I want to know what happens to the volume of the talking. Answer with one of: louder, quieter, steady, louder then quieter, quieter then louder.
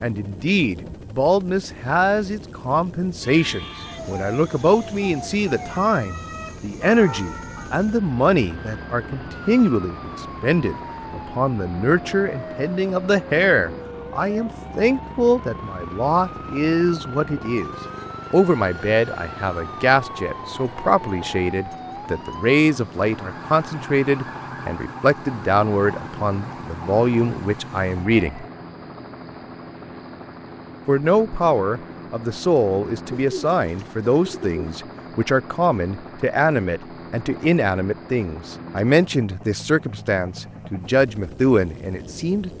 steady.